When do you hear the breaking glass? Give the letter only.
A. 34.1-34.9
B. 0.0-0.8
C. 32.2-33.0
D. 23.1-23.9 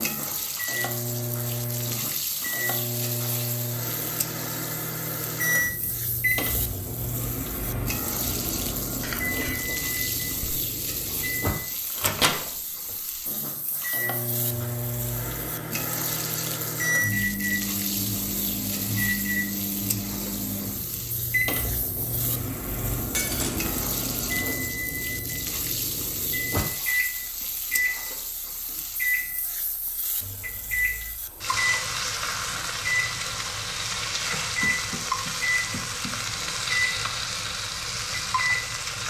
D.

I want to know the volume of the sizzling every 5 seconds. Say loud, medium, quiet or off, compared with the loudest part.
medium, medium, medium, medium, medium, medium, loud, loud.